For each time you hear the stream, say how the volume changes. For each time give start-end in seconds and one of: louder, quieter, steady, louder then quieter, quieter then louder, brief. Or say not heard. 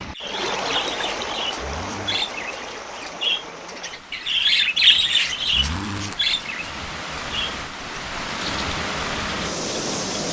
0.0-10.2 quieter then louder.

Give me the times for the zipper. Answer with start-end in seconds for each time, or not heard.
1.6-2.2, 5.5-6.2.